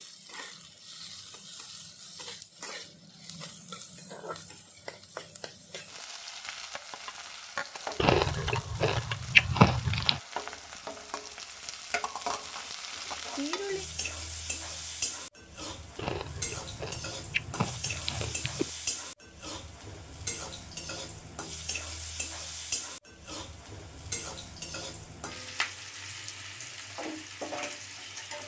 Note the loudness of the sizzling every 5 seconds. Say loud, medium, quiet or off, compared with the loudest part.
medium, loud, loud, loud, loud, loud.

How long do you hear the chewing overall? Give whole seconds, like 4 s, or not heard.
5 s.